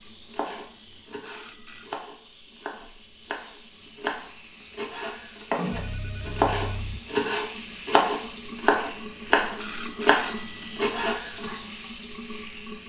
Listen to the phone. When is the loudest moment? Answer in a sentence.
The volume of the phone peaks at 10 seconds.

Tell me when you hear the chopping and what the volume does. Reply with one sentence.
You can hear the chopping from 0.3 to 11.4 s, getting louder.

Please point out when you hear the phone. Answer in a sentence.
You can hear the phone from 0.5 to 1.9 s, from 5.7 to 7.0 s and from 8.8 to 10.8 s.